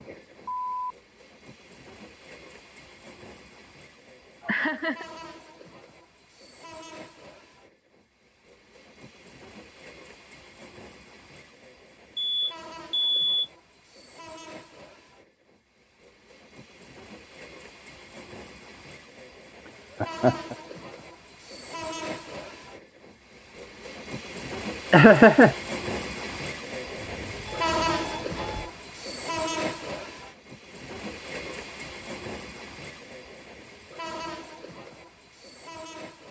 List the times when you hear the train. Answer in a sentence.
You can hear the train from 0.0 to 36.2 s.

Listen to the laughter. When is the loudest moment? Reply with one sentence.
The loudest moment of the laughter is at 25 seconds.